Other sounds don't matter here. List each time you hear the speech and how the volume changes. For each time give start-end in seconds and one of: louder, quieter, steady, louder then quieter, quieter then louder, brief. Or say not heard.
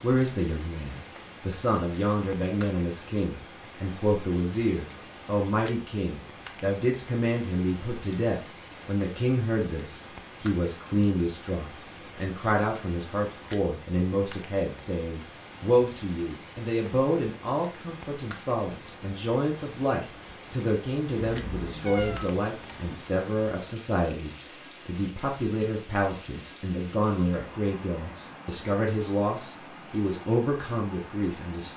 0.0-31.7 steady.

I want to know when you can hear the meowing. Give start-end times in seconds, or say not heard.
21.7-23.1.